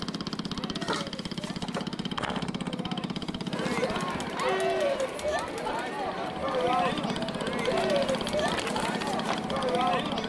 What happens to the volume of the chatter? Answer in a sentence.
The volume of the chatter goes up.